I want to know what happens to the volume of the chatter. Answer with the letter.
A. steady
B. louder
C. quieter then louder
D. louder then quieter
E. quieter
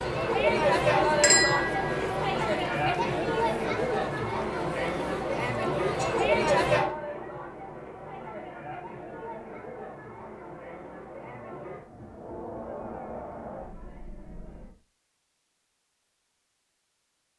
E.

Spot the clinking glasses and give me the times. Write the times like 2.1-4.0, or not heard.
1.2-2.1.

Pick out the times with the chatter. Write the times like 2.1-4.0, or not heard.
0.0-14.8.